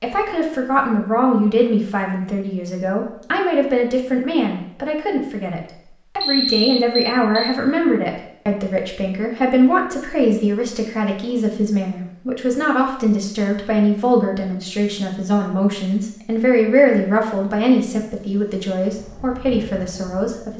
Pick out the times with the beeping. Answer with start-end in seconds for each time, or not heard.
6.2-7.5.